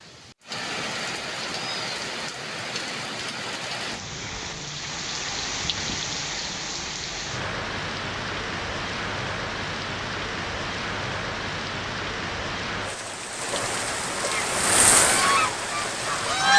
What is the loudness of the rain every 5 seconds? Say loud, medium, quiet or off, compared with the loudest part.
medium, loud, loud, loud.